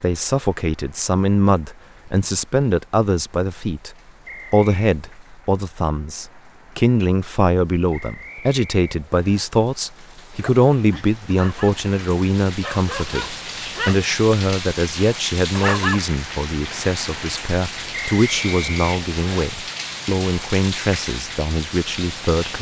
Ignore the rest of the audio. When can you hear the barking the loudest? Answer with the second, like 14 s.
16 s.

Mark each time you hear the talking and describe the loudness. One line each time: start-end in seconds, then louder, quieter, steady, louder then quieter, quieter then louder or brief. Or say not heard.
0.0-22.5 steady.